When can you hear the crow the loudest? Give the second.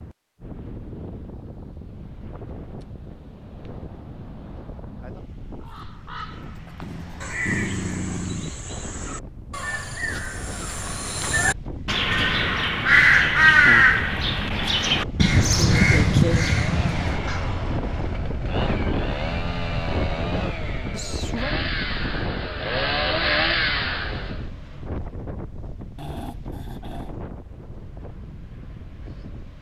14 s.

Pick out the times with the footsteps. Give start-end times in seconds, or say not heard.
not heard.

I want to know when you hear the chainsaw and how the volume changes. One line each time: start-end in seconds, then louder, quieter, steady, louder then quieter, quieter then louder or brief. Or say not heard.
16.6-24.4 louder.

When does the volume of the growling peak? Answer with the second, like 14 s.
8 s.